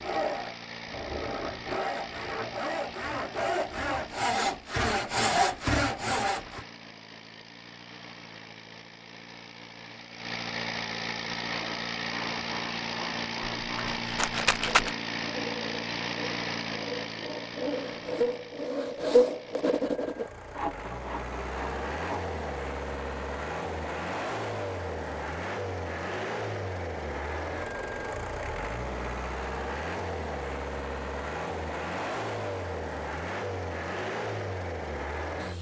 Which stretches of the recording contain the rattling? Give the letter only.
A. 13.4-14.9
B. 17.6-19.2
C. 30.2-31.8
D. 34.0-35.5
A.